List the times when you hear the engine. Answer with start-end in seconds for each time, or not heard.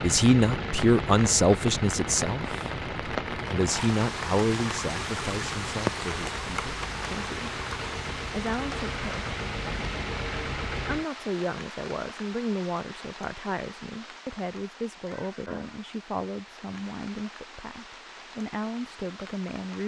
0.0-11.1.